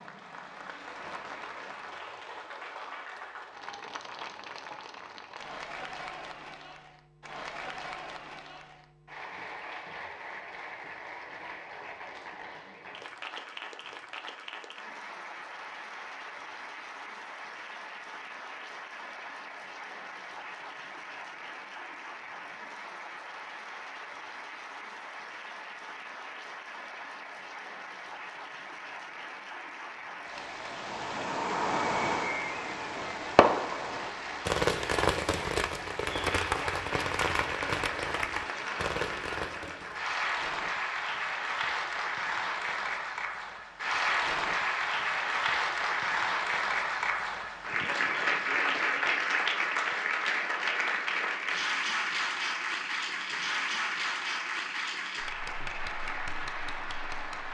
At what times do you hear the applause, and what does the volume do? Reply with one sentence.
You can hear the applause from 0.0 to 57.4 s, getting louder.